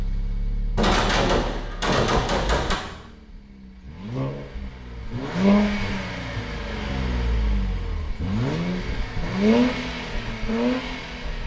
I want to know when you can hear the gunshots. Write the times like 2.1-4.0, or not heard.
0.8-2.8.